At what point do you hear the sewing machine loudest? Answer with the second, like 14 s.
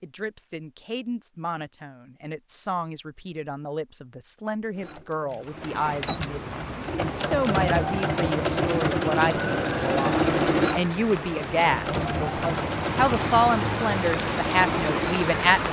10 s.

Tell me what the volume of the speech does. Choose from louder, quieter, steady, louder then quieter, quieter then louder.
louder.